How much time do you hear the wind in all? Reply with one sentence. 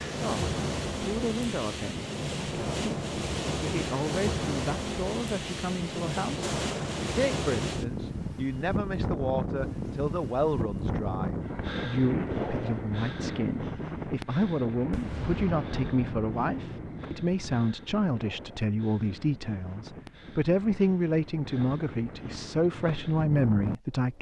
The wind can be heard for 24 seconds in total.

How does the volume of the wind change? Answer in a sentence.
The loudness of the wind goes down.